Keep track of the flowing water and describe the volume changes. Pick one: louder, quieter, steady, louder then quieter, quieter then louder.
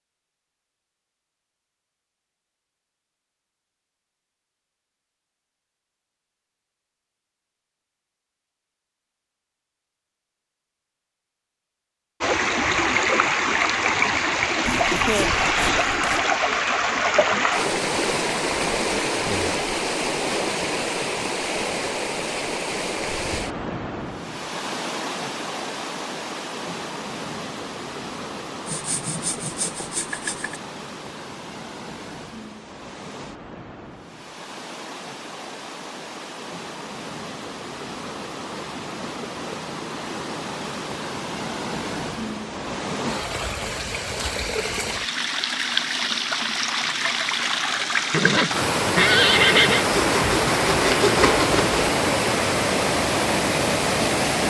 quieter then louder.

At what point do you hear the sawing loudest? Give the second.
51 s.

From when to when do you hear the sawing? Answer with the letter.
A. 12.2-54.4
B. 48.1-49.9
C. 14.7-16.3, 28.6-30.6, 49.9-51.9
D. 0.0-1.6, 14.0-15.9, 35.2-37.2
C.